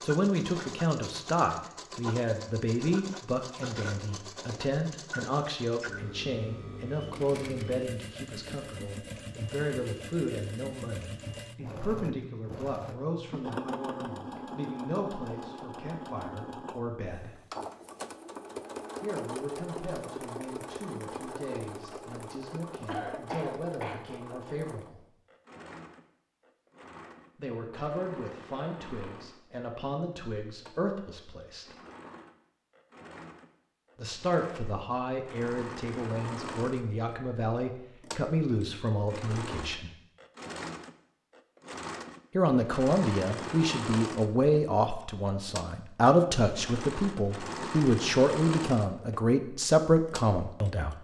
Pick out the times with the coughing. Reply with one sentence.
The coughing can be heard from 22.9 to 24.1 s.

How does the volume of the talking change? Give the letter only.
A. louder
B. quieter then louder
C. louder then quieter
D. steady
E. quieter
B.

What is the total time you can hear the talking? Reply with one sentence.
You can hear the talking for 42 seconds altogether.